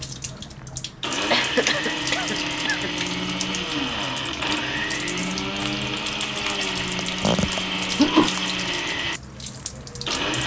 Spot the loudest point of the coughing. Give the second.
8 s.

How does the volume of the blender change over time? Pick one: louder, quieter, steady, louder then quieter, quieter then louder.
steady.